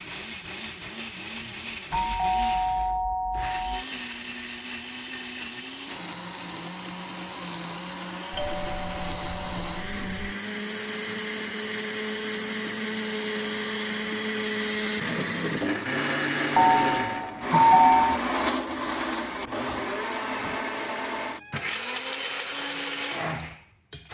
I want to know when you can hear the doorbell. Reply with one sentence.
The doorbell can be heard from 1.9 to 3.9 s, from 8.3 to 10.3 s and from 16.6 to 18.2 s.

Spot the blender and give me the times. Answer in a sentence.
You can hear the blender from 0.0 to 24.1 s.